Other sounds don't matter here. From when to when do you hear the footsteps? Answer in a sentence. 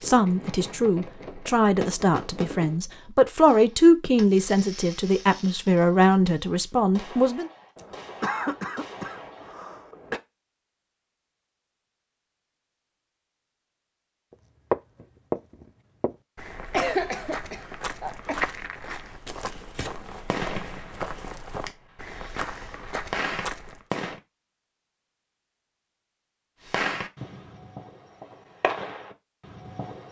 The footsteps can be heard from 14.3 to 23.9 s.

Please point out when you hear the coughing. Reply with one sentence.
You can hear the coughing from 7.8 to 10.2 s and from 16.7 to 18.4 s.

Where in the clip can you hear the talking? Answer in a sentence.
You can hear the talking from 0.0 to 7.5 s.